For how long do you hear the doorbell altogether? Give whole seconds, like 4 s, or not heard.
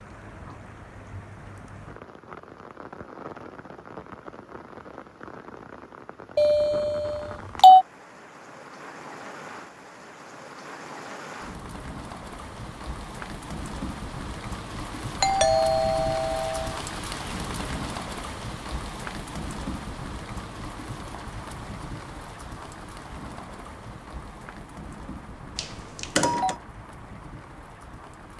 4 s.